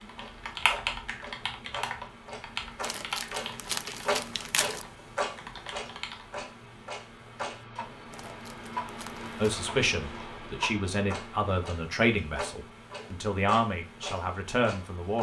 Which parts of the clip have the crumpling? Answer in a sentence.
The crumpling can be heard from 2.8 to 4.8 s and from 8.1 to 9.5 s.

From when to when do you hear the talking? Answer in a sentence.
The talking can be heard from 9.4 to 15.1 s.